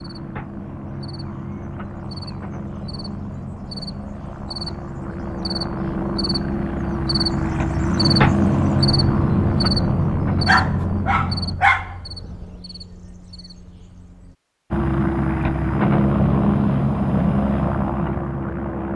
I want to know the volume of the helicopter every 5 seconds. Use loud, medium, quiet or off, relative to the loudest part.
quiet, loud, medium, loud.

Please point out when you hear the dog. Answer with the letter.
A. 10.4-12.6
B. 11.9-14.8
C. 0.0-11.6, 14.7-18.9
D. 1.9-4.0
A.